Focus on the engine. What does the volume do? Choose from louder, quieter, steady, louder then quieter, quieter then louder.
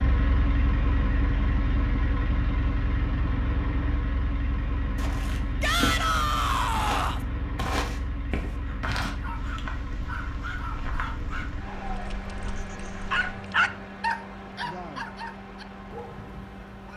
quieter.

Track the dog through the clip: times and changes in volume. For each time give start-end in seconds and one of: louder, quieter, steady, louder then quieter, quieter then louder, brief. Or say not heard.
8.7-16.9 louder then quieter.